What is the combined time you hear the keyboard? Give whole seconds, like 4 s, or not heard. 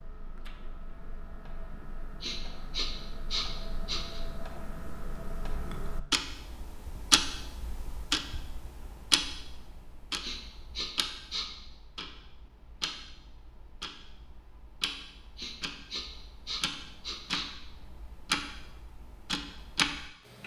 not heard.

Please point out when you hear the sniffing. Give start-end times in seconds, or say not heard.
2.2-4.2, 10.2-11.4, 15.3-17.4.